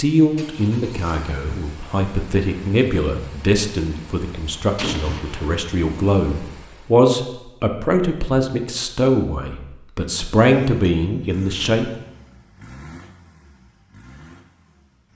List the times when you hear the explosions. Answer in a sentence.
The explosions can be heard from 4.8 to 5.6 s.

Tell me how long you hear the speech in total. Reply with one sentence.
You can hear the speech for 12 seconds altogether.